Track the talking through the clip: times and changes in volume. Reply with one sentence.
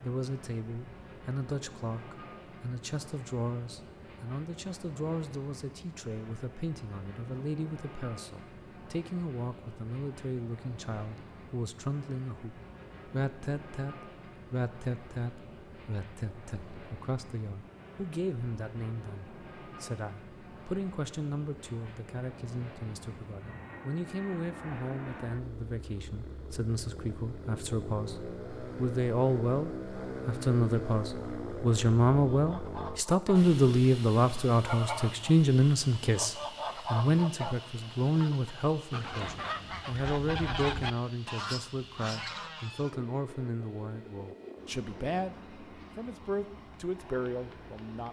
You can hear the talking from 0.0 to 28.1 s, at a steady volume; and from 28.8 to 48.0 s, getting quieter.